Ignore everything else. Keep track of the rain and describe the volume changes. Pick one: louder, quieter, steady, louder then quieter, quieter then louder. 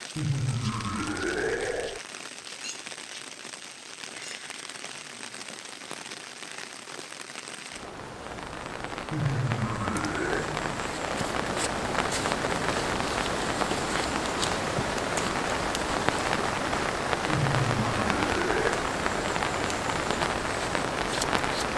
louder.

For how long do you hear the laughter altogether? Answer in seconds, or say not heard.
5 s.